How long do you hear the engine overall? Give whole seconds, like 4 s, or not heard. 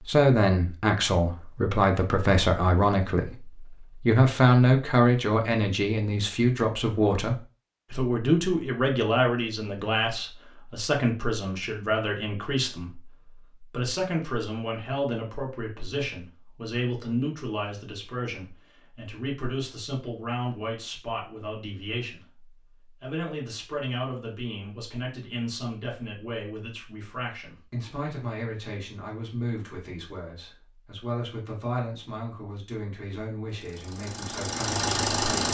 2 s.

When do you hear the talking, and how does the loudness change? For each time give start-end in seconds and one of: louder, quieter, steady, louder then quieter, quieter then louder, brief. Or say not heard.
0.0-35.5 quieter.